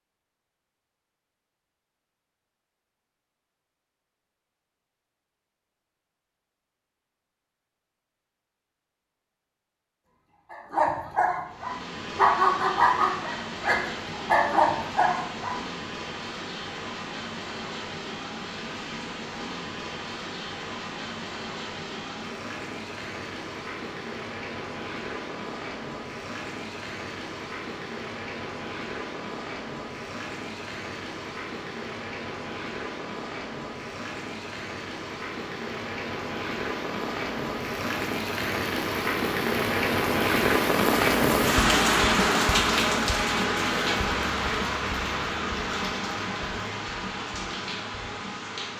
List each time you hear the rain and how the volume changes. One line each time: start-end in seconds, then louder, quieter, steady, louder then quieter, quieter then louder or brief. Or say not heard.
11.4-48.7 louder.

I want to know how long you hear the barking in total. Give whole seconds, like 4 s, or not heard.
5 s.